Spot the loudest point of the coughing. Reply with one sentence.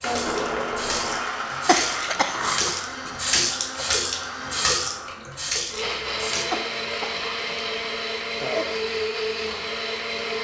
The loudest moment of the coughing is at 2 seconds.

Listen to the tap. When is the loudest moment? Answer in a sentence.
The loudest moment of the tap is at 4 seconds.